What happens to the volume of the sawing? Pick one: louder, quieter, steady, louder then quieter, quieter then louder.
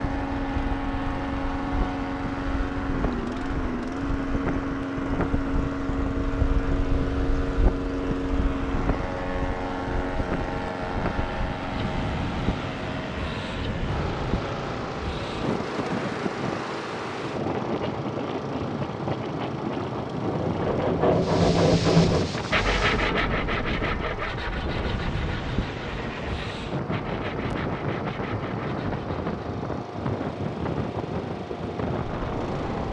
quieter.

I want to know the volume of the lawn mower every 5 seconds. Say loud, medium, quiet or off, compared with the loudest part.
loud, loud, loud, medium, medium, medium, medium.